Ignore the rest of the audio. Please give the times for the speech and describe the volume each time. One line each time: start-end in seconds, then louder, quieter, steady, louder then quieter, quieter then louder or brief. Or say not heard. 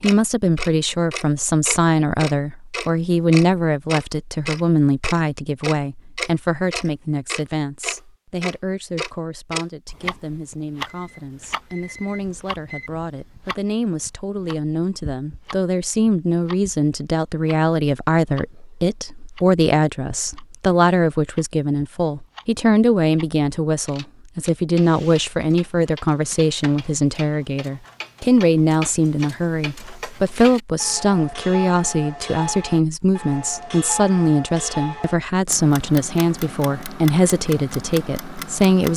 0.0-38.9 quieter then louder.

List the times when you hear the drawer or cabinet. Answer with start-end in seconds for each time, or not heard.
not heard.